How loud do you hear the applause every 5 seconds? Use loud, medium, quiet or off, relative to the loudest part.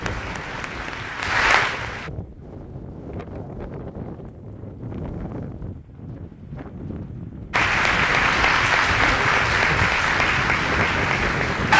medium, loud, loud.